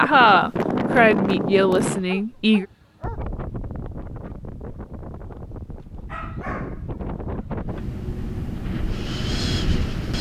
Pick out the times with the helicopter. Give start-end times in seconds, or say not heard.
not heard.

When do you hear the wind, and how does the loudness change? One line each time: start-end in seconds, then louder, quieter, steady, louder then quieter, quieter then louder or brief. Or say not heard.
0.0-10.1 quieter then louder.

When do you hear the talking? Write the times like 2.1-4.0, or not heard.
0.0-2.6.